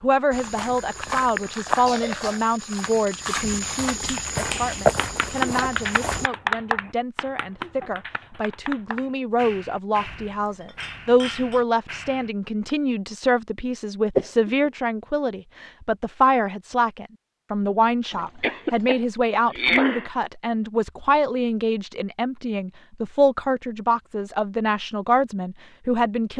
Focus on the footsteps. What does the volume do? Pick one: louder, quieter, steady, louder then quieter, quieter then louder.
quieter then louder.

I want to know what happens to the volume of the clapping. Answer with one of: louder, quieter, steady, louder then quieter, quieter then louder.
quieter.